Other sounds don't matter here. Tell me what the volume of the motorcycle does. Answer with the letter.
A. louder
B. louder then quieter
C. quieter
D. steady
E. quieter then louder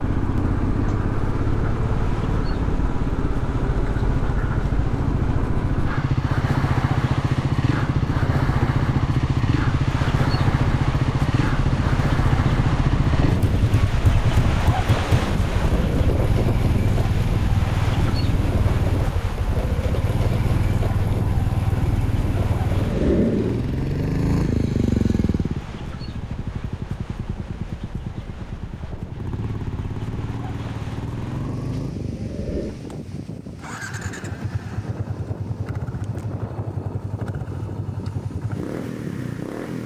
C.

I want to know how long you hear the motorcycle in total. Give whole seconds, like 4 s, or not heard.
40 s.